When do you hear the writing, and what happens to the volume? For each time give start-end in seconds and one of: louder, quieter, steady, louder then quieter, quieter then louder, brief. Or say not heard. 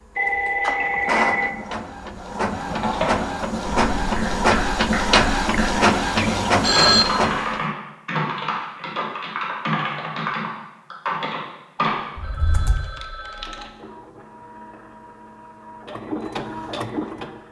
not heard.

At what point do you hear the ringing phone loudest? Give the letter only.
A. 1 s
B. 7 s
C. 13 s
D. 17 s
B.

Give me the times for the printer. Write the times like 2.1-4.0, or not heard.
0.0-7.7, 13.2-17.4.